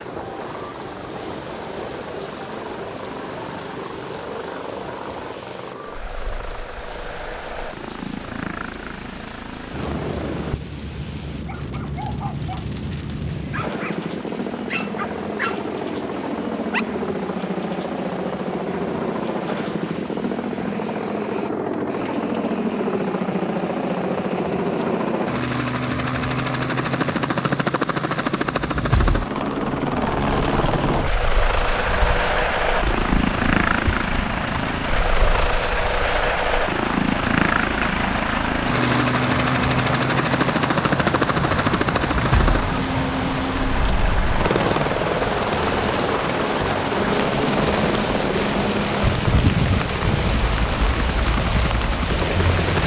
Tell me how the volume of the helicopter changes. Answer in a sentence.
The volume of the helicopter goes up.